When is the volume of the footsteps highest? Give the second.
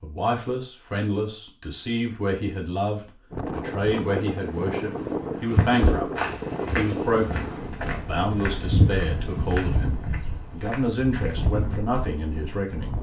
9 s.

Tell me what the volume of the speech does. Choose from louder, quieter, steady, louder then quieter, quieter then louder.
steady.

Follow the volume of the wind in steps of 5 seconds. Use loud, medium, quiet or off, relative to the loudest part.
loud, loud, medium.